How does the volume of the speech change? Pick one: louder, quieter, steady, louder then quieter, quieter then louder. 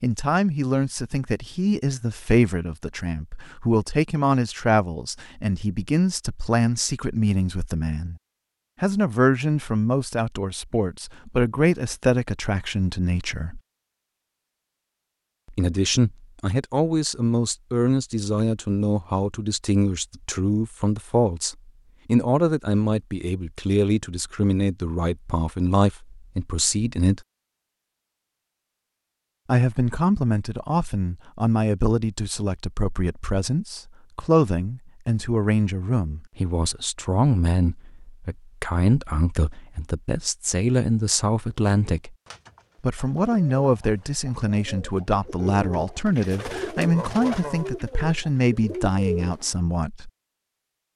steady.